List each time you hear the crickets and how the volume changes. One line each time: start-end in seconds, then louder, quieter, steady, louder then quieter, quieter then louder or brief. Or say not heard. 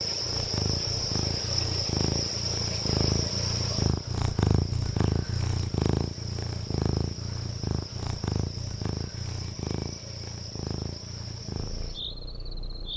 0.0-12.9 quieter.